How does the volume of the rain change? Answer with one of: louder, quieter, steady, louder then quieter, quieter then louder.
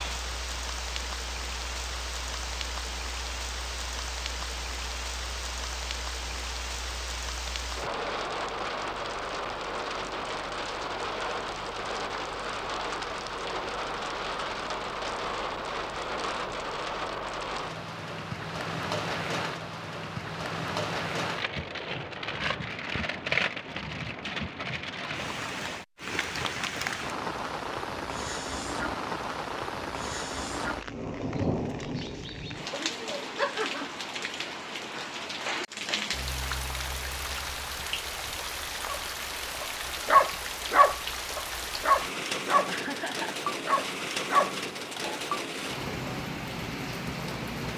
steady.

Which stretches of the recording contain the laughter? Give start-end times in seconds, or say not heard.
42.5-43.4.